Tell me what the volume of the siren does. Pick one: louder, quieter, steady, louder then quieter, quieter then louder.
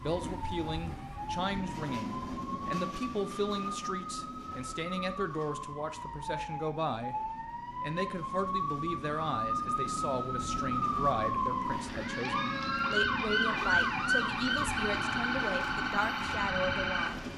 louder.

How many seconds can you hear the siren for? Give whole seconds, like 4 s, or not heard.
17 s.